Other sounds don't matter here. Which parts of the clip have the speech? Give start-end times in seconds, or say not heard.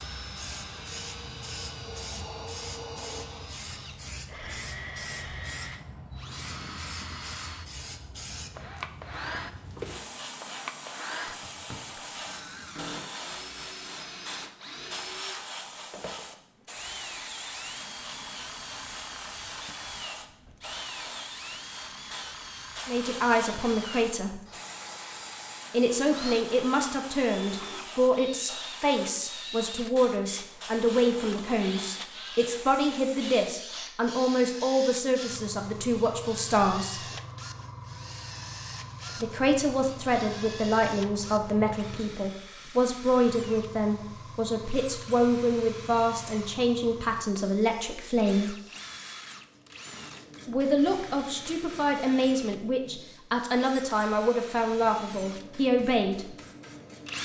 22.9-24.4, 25.7-37.0, 39.2-48.5, 50.5-56.4.